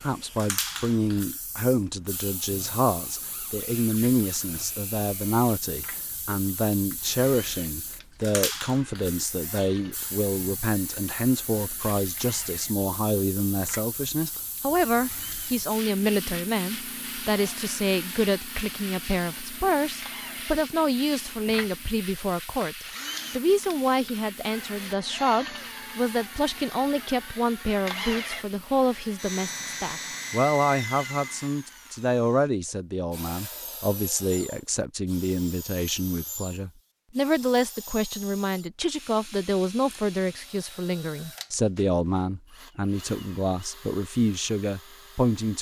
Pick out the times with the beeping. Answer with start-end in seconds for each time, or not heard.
not heard.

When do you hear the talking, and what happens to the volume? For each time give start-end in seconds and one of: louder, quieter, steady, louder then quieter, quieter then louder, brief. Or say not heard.
0.0-45.5 steady.